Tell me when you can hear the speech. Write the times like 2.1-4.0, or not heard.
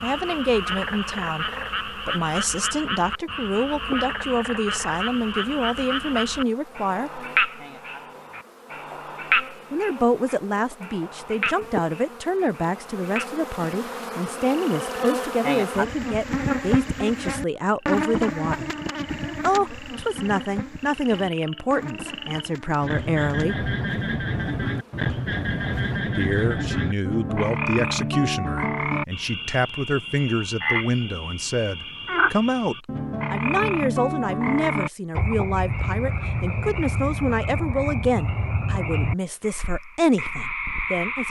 0.0-7.2, 9.7-18.7, 19.4-23.7, 26.1-41.2.